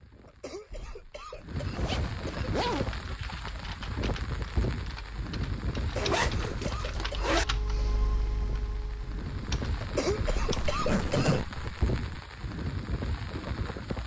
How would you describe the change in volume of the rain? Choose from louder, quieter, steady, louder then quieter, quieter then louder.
steady.